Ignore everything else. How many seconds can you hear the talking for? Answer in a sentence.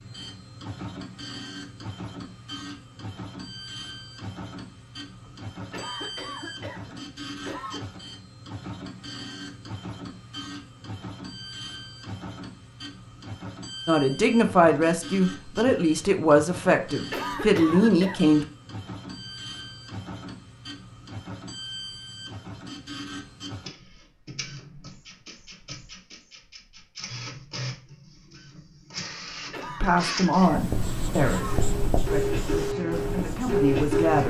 The talking can be heard for 9 seconds in total.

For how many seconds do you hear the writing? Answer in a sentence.
The writing can be heard for 4 seconds in total.